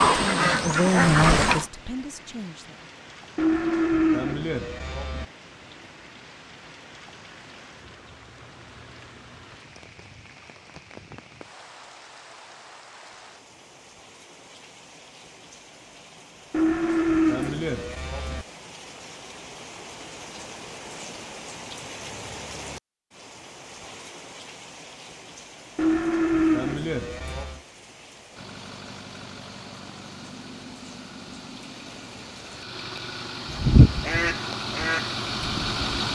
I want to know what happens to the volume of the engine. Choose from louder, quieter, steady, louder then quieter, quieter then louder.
louder.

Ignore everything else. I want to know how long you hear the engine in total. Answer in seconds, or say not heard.
8 s.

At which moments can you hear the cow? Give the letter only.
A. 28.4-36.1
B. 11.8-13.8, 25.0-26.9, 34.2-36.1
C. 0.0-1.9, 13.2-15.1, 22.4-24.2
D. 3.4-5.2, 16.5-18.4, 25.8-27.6
D.